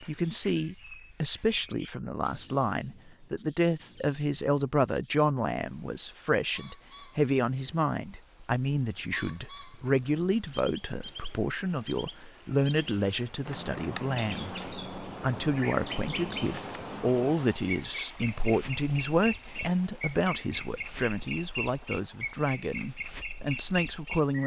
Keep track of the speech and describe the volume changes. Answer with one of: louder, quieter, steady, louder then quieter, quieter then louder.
steady.